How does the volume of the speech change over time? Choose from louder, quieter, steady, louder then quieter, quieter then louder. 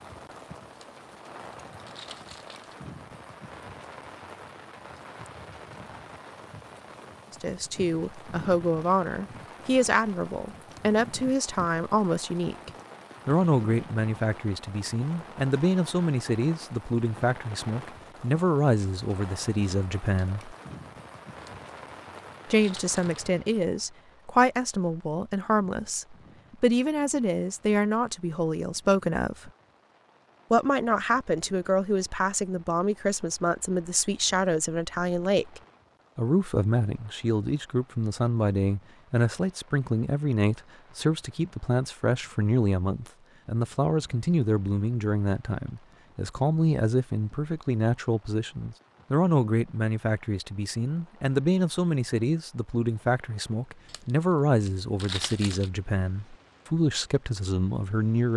steady.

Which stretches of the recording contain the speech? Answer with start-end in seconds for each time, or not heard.
7.3-20.6, 22.5-29.5, 30.5-58.3.